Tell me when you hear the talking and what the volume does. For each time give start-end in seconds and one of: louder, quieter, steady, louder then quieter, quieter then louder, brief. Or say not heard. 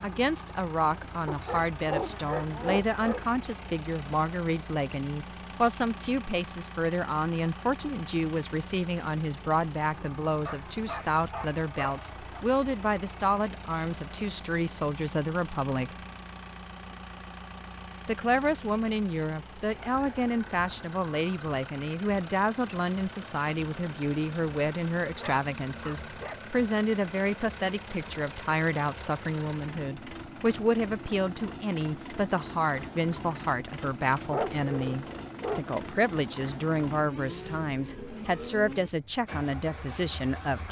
0.0-15.9 steady
18.1-40.6 steady.